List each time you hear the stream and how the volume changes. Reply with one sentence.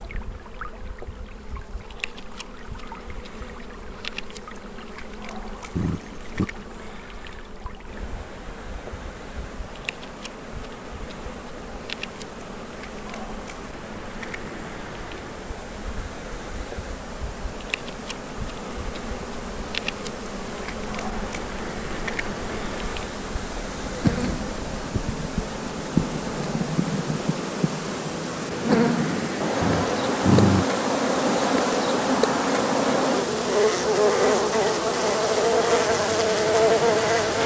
You can hear the stream from 0.0 to 37.4 s, getting louder.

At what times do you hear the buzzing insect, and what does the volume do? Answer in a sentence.
You can hear the buzzing insect from 0.0 to 37.4 s, getting louder.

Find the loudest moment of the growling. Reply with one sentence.
The loudest moment of the growling is at 30 seconds.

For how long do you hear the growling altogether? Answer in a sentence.
The growling can be heard for 2 seconds in total.